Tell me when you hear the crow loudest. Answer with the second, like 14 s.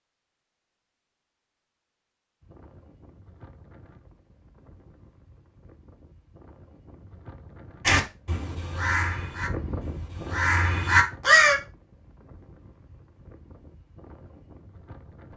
11 s.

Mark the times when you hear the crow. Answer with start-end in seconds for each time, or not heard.
7.8-11.6.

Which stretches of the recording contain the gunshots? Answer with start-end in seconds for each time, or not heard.
not heard.